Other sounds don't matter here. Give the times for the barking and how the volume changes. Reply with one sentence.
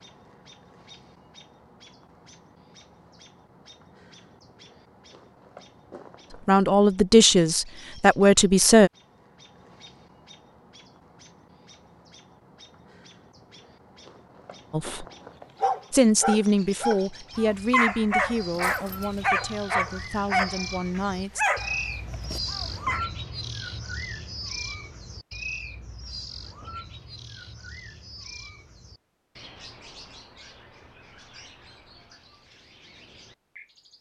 You can hear the barking from 15.6 to 23.1 s, at a steady volume.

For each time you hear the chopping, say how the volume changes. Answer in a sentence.
You can't hear the chopping here.